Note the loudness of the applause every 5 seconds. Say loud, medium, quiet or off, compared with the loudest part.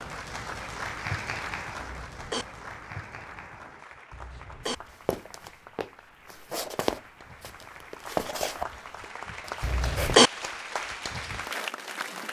loud, medium, loud.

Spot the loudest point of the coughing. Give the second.
10 s.